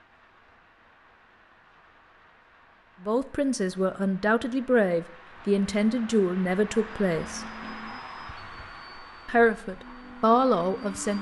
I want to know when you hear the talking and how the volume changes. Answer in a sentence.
You can hear the talking from 3.0 to 7.5 s, at a steady volume; and briefly from 9.2 to 11.1 s.